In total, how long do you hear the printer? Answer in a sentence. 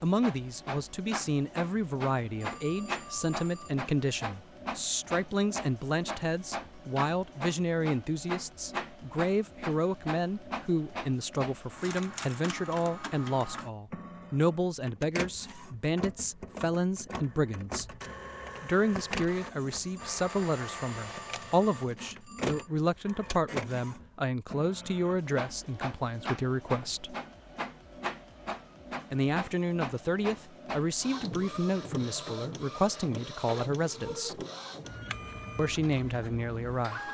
You can hear the printer for 37 seconds altogether.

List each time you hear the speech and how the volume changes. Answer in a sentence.
You can hear the speech from 0.0 to 17.9 s, at a steady volume; from 18.6 to 27.1 s, at a steady volume; from 29.1 to 34.5 s, at a steady volume; and briefly from 35.5 to 37.0 s.